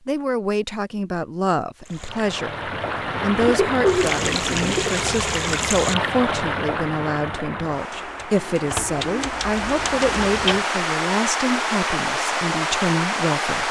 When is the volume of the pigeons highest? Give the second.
4 s.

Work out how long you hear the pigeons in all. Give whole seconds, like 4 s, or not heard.
4 s.